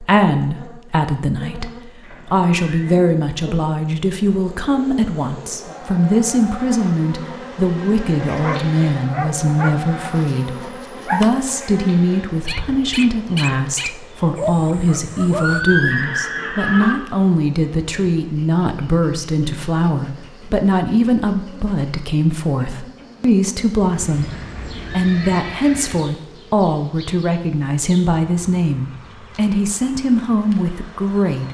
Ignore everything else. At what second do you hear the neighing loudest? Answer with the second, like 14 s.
16 s.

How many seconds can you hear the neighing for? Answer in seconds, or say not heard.
5 s.